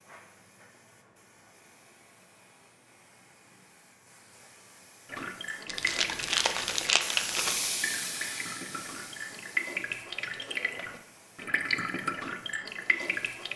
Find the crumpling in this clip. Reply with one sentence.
The crumpling can be heard from 5.7 to 7.7 s.